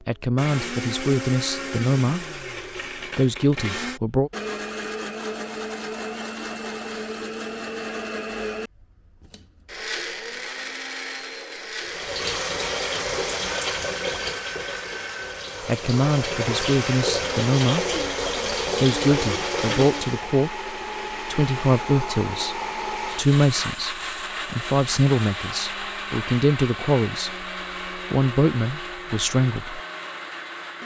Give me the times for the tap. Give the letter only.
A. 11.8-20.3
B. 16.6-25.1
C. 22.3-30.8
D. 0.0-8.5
A.